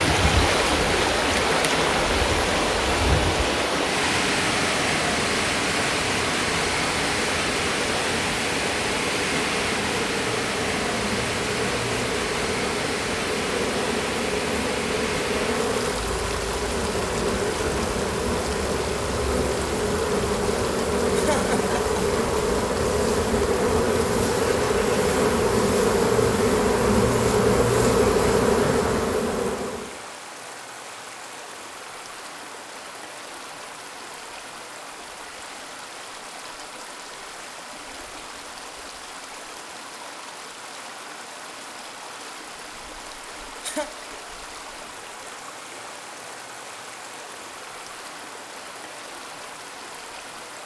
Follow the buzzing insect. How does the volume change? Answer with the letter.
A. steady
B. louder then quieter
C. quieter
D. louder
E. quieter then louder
D.